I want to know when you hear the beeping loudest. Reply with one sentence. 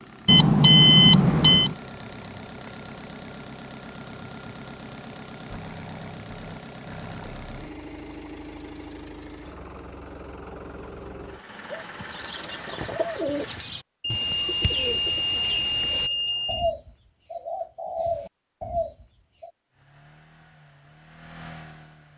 The loudest moment of the beeping is at 1 second.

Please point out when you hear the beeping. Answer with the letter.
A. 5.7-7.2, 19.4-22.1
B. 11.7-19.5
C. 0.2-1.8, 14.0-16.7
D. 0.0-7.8
C.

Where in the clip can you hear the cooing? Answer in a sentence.
The cooing can be heard from 11.7 to 19.5 s.